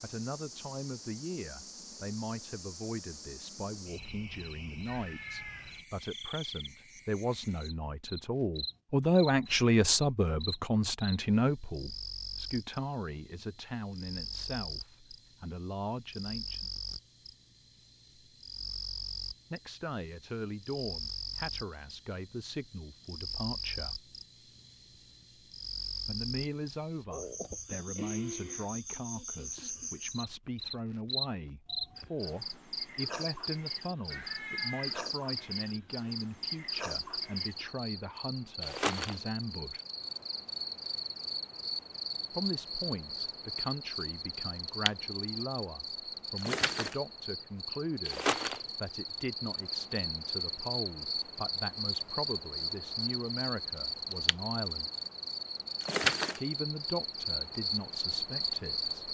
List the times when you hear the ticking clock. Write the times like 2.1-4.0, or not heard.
not heard.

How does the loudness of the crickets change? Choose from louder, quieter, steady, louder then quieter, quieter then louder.
louder.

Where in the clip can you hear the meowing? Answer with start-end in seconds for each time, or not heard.
4.8-5.8, 34.1-35.0.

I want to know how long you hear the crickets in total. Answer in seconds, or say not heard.
59 s.